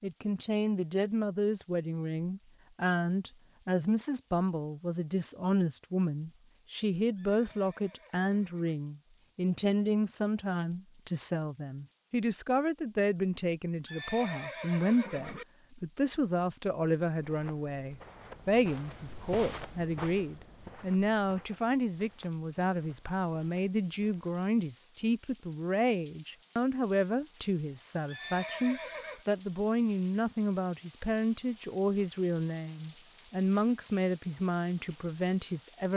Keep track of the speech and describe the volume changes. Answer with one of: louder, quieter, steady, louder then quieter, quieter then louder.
steady.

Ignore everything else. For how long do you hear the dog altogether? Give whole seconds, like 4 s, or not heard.
not heard.